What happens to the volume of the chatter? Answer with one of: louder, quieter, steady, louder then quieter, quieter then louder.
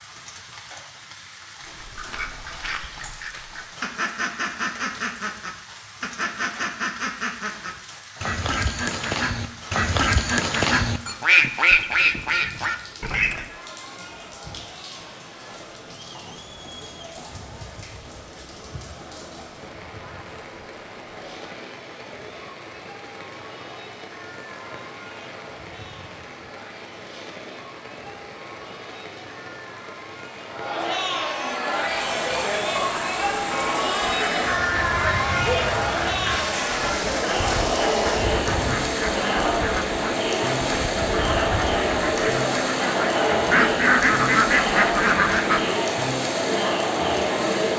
louder.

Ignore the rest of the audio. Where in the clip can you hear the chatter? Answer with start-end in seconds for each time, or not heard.
13.4-47.7.